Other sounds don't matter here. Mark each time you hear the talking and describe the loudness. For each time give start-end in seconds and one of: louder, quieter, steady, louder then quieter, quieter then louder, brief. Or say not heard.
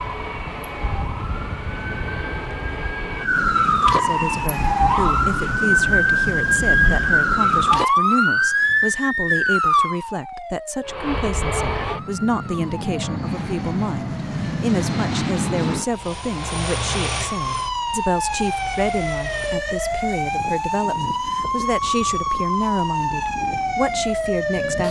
4.0-24.8 steady.